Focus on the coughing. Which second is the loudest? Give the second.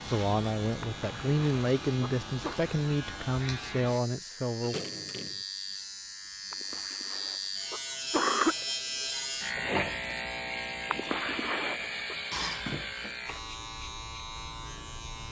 8 s.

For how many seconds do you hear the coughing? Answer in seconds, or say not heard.
5 s.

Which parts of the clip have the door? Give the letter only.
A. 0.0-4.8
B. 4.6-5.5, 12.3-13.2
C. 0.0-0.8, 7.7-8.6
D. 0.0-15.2
B.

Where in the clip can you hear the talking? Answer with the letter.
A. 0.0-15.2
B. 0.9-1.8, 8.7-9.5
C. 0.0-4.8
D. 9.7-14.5
C.